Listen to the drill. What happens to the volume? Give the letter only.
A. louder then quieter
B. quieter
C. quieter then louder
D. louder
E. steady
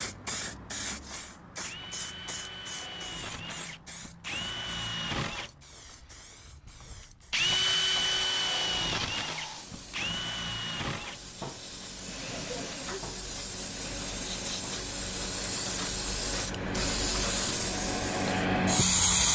A.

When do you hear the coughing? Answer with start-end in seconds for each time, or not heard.
12.3-13.0.